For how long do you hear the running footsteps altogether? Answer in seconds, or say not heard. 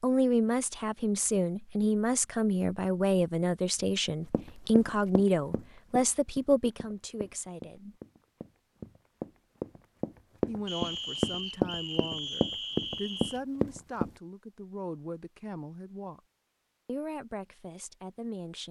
10 s.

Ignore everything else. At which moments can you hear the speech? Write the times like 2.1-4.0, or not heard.
0.0-8.0, 10.4-16.2, 16.9-18.6.